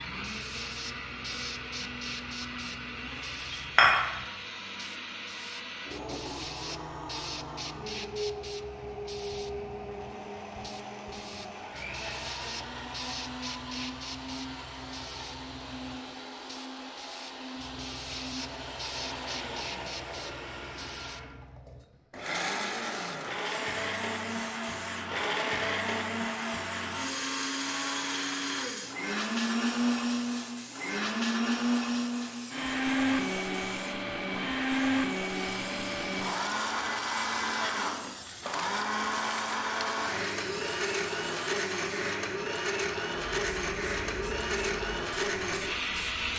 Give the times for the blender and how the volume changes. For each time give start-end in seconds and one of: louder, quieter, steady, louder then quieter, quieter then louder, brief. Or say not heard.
0.0-46.3 louder.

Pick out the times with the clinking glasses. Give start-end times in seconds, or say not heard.
3.5-4.0.